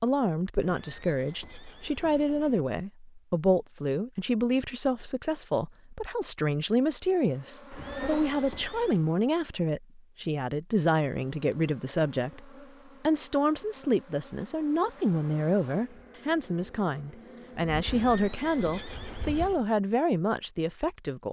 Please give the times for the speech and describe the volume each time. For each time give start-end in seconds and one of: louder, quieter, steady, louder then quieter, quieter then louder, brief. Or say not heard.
0.0-21.2 steady.